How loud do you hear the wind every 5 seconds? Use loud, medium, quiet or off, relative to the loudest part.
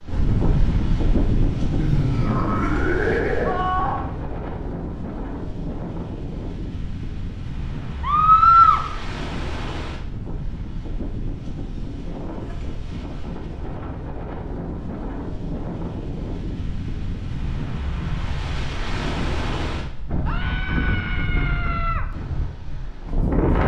loud, medium, medium, loud, loud.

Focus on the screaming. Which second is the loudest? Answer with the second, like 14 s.
8 s.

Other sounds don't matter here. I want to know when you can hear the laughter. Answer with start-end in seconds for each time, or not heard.
1.8-3.6.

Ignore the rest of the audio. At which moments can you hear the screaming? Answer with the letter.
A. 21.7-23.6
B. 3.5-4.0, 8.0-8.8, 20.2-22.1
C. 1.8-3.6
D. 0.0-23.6
B.